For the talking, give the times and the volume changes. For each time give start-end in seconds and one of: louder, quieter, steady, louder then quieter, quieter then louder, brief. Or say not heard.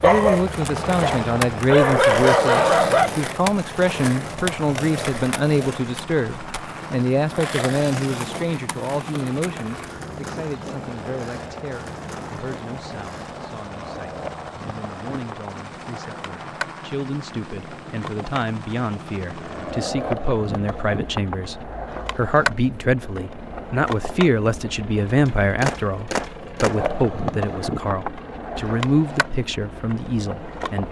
0.0-30.8 quieter then louder.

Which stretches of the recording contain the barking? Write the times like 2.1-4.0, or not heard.
0.0-3.1.